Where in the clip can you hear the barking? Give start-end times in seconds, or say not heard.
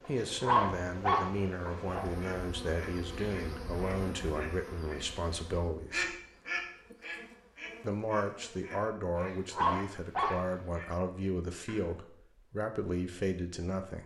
0.1-2.0, 9.2-10.4.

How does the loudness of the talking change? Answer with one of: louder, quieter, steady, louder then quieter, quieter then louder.
steady.